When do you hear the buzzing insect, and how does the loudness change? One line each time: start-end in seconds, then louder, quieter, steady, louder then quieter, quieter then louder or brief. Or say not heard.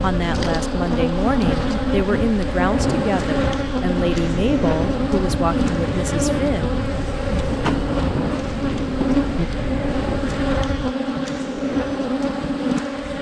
0.0-13.1 steady.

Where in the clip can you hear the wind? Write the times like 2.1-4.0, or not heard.
0.0-10.9.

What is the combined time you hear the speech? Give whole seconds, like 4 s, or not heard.
7 s.